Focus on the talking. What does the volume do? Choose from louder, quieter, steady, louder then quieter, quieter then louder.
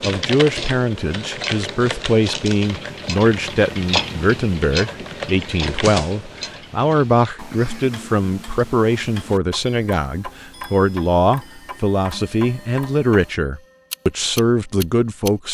steady.